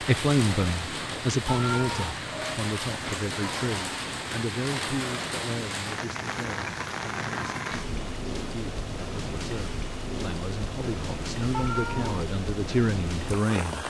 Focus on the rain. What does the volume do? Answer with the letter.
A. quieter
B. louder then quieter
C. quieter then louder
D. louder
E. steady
E.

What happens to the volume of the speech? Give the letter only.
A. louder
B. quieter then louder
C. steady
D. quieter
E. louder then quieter
B.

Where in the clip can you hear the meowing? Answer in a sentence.
The meowing can be heard from 1.4 to 2.1 s and from 11.5 to 12.3 s.